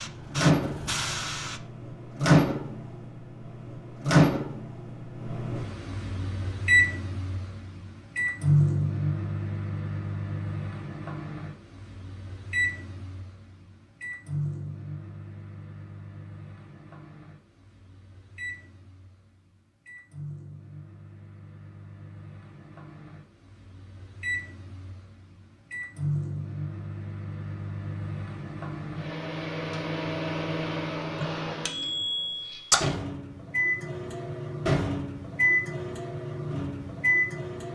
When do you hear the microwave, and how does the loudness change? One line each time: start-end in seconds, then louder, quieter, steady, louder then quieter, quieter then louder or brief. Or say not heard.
0.0-37.7 quieter then louder.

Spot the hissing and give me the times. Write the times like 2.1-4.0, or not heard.
0.0-1.6.